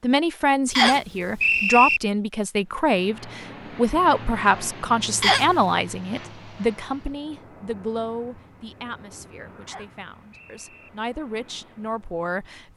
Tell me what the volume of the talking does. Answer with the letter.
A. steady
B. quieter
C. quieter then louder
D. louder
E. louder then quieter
B.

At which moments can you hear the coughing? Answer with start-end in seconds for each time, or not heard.
not heard.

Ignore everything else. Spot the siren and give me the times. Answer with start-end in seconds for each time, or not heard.
not heard.